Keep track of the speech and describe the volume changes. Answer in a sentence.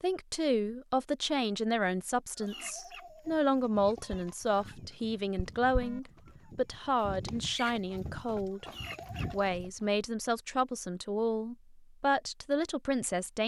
The loudness of the speech stays about the same.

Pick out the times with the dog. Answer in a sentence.
The dog can't be heard in this clip.